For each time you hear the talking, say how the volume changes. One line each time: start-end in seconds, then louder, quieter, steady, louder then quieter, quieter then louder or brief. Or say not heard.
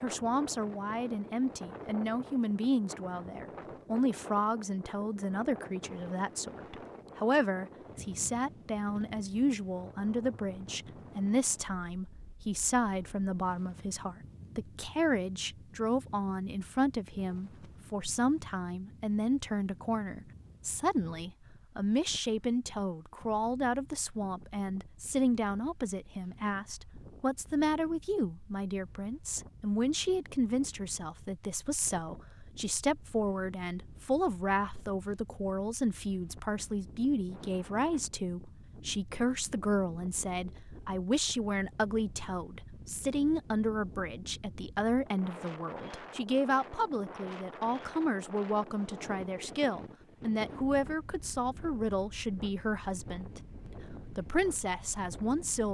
0.0-55.6 steady.